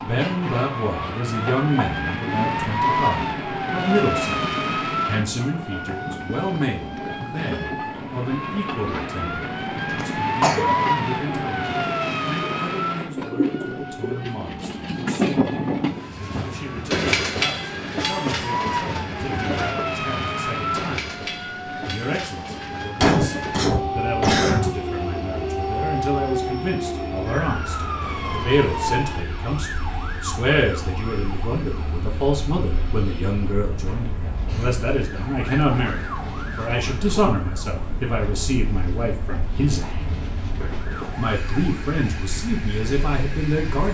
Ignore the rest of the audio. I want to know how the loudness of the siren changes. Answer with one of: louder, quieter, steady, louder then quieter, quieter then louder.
quieter.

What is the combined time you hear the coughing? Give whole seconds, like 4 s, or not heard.
4 s.